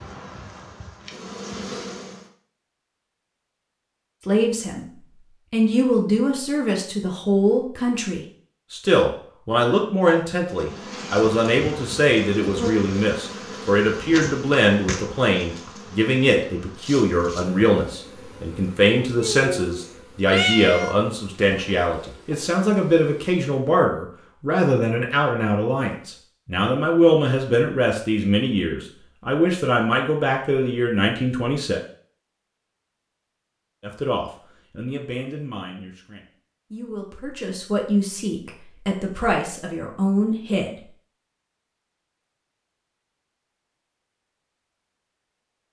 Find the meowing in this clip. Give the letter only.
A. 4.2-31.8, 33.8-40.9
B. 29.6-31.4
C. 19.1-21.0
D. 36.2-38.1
C.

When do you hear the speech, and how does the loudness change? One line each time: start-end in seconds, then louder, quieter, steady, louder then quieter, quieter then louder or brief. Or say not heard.
4.2-31.8 steady
33.8-40.9 quieter then louder.